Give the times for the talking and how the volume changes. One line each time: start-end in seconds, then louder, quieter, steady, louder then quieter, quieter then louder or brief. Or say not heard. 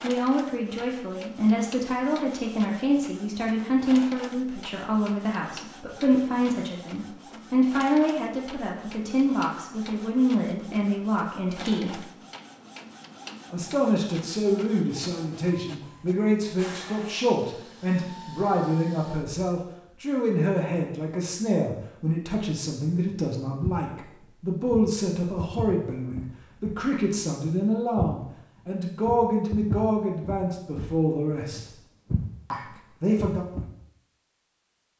0.0-12.0 steady
13.5-31.7 steady
32.5-33.5 brief.